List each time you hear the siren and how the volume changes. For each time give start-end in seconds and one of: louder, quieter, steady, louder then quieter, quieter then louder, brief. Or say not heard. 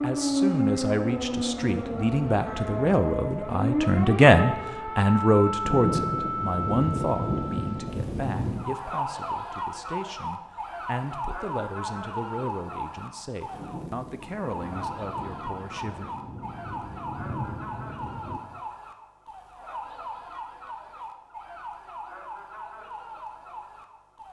0.0-24.2 quieter.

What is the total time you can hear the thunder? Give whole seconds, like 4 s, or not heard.
8 s.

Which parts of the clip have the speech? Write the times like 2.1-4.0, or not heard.
0.0-16.1.